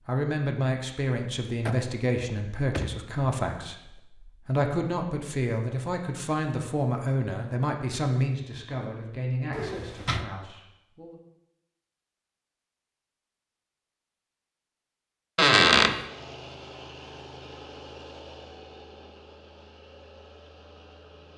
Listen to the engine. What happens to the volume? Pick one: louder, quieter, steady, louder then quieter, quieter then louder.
quieter.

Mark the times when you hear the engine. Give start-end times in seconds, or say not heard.
15.9-21.3.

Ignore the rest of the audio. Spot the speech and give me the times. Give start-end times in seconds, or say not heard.
0.1-11.2.